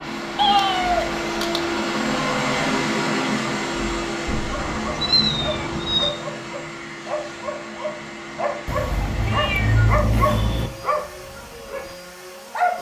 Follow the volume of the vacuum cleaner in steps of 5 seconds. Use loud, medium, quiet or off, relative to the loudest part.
loud, medium, quiet.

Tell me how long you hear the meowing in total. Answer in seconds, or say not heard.
5 s.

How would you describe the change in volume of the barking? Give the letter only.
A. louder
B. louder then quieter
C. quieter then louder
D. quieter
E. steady
B.